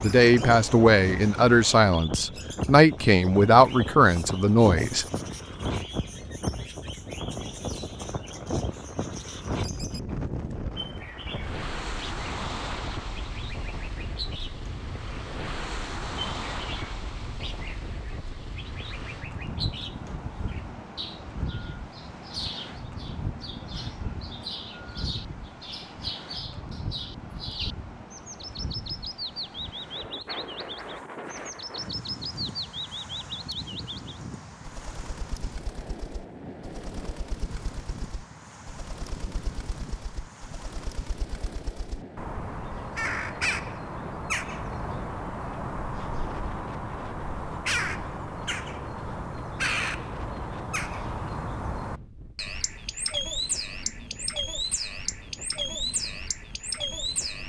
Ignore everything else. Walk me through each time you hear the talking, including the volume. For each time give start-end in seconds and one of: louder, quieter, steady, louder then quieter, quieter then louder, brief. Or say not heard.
0.0-5.0 steady.